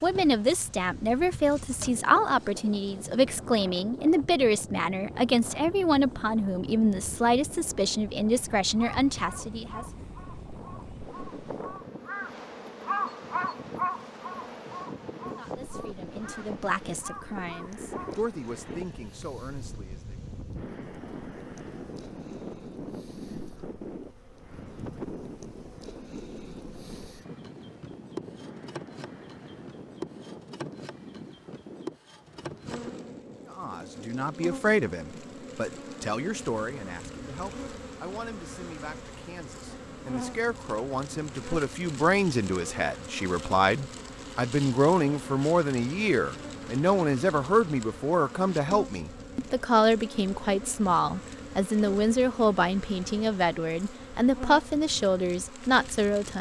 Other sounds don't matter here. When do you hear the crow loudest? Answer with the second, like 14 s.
13 s.